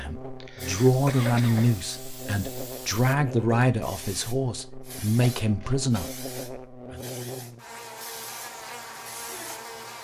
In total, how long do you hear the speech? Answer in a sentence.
You can hear the speech for 7 seconds altogether.